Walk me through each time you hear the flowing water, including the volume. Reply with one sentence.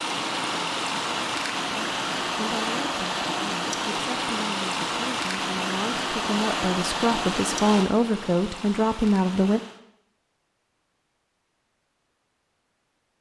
You can hear the flowing water from 0.0 to 9.8 s, getting quieter.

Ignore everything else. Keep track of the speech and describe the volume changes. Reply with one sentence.
The volume of the speech goes up.